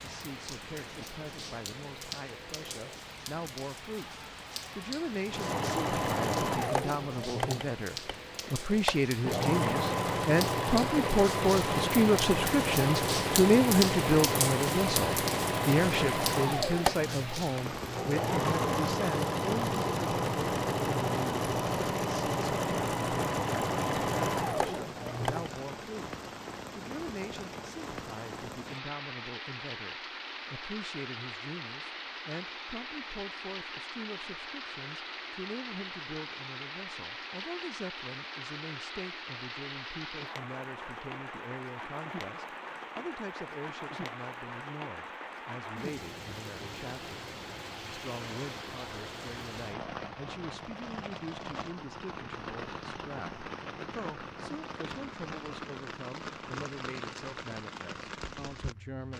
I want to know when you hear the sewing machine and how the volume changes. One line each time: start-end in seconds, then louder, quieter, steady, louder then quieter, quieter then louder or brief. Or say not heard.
5.2-25.5 steady.